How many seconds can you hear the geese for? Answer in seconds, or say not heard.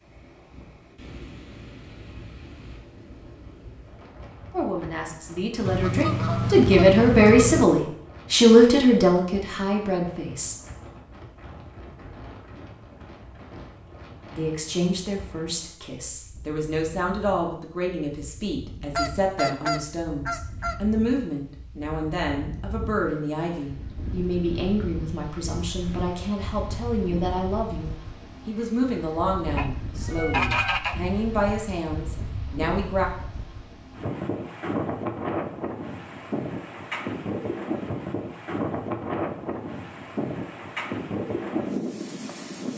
5 s.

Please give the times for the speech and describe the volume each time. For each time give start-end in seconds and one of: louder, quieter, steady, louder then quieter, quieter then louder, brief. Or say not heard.
4.5-10.6 louder then quieter
14.3-33.0 steady.